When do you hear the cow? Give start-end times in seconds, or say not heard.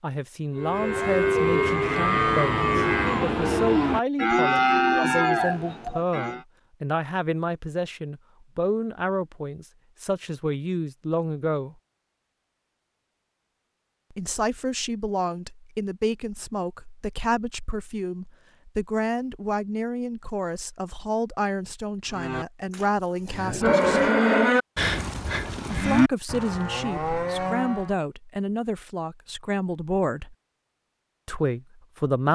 0.6-6.4, 22.1-27.9.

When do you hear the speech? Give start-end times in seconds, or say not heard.
0.0-11.8, 14.1-24.1, 25.6-30.4, 31.2-32.3.